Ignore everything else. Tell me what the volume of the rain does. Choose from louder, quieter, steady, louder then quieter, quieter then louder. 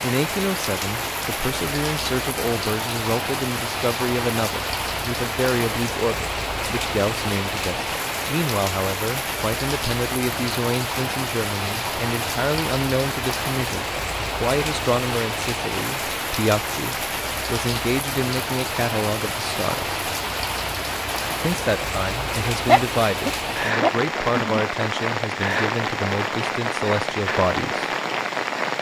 steady.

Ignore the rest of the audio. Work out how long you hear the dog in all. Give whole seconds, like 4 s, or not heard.
2 s.